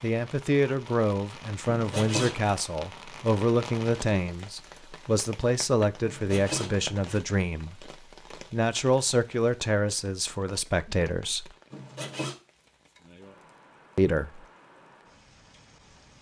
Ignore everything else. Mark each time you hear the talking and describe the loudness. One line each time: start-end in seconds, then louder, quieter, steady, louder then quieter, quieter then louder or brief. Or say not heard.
0.0-11.6 steady
13.9-14.4 brief.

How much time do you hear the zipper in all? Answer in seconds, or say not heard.
3 s.